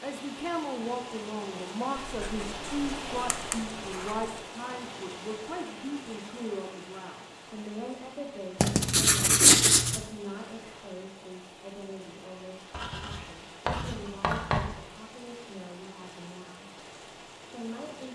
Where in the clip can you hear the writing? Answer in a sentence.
You can hear the writing from 2.0 to 4.3 s, from 8.6 to 10.1 s and from 12.7 to 14.8 s.